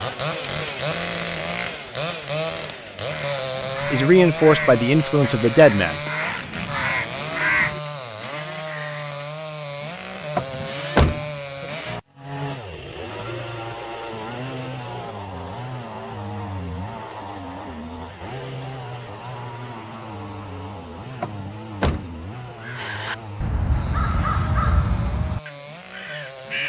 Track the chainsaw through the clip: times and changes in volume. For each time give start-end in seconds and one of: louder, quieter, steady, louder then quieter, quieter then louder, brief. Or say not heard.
0.0-26.6 quieter.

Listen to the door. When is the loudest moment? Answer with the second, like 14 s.
11 s.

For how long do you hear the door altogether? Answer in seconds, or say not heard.
3 s.